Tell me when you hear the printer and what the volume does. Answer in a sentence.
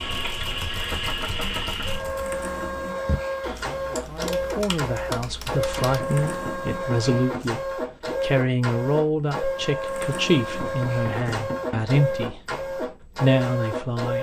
The printer can be heard from 0.0 to 14.1 s, at a steady volume.